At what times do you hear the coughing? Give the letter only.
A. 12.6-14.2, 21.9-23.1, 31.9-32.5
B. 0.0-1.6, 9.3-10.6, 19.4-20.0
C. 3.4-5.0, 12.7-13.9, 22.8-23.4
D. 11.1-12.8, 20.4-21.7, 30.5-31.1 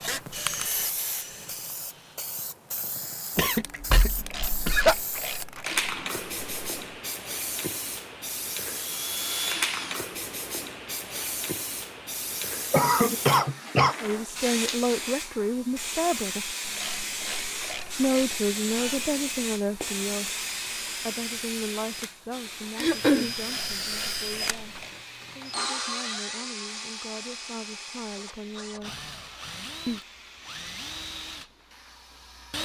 C.